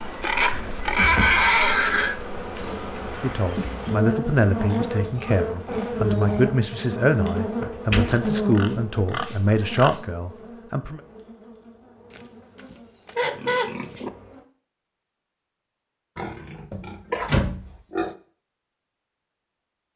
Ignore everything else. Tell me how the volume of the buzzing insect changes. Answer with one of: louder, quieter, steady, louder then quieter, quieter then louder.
louder then quieter.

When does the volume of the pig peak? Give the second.
1 s.